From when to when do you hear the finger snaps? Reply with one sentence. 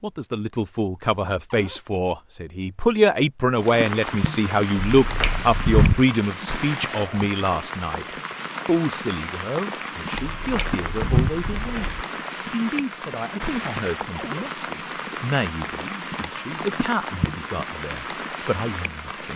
You can hear the finger snaps from 4.9 to 6.0 s and from 10.2 to 12.1 s.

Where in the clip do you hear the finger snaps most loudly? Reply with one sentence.
The loudest moment of the finger snaps is at 6 seconds.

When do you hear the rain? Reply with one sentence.
You can hear the rain from 3.5 to 19.3 s.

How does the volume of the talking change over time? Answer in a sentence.
The loudness of the talking goes down.